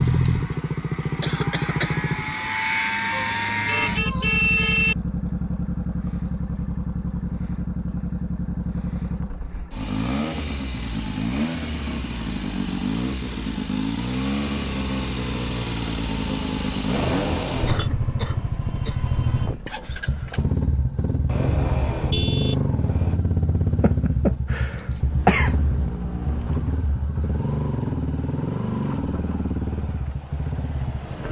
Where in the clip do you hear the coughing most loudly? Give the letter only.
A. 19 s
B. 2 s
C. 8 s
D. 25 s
D.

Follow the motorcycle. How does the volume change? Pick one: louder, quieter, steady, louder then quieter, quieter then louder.
steady.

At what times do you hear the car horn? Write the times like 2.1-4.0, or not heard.
3.1-5.0, 17.0-17.9, 21.2-23.2.